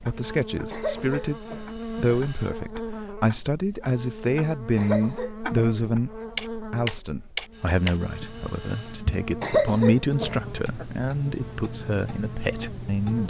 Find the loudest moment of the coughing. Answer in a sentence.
The volume of the coughing peaks at 10 seconds.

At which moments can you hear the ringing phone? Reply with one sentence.
The ringing phone can be heard from 0.8 to 2.5 s and from 7.5 to 9.1 s.